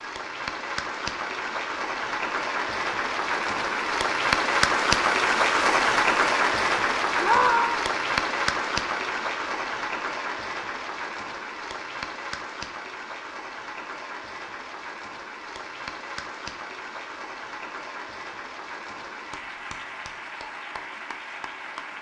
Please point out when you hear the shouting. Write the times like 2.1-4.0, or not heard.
7.2-7.8.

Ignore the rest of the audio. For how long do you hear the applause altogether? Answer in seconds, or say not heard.
22 s.